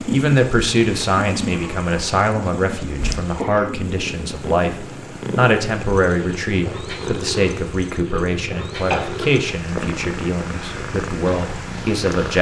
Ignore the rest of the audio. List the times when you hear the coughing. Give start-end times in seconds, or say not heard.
3.2-3.8, 8.9-9.3.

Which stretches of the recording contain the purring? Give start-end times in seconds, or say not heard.
0.0-12.3.